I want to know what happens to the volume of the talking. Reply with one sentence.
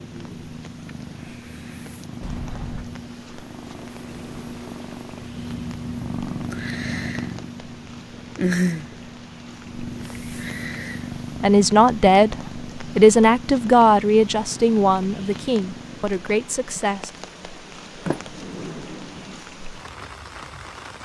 The loudness of the talking goes down.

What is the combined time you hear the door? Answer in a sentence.
The door can be heard for 2 seconds in total.